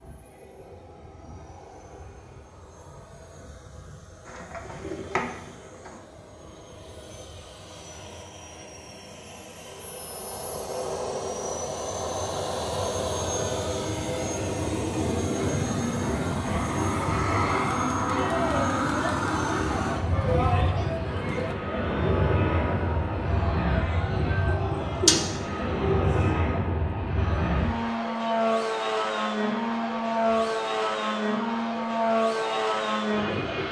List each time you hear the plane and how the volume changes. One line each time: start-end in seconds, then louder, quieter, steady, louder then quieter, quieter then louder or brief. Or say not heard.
0.0-33.6 louder.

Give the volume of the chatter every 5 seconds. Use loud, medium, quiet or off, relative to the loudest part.
off, off, off, loud, loud, medium, medium.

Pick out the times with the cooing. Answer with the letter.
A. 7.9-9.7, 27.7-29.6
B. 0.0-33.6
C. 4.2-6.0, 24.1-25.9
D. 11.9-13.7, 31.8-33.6
C.